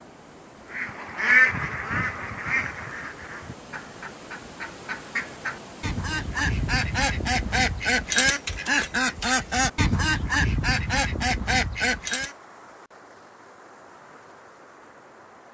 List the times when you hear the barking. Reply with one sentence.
You can't hear the barking here.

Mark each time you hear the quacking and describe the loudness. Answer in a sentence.
The quacking can be heard from 0.7 to 12.3 s, getting quieter then louder.